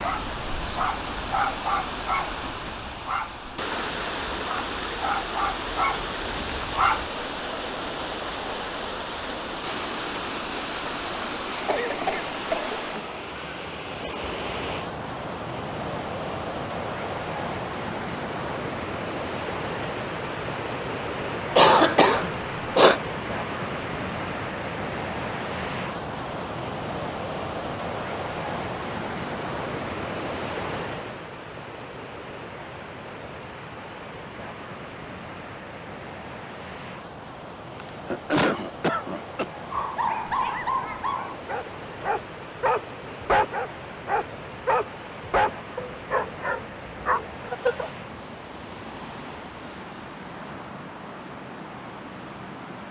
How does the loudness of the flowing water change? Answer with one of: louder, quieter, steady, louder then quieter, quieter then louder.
quieter.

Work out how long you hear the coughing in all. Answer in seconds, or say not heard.
4 s.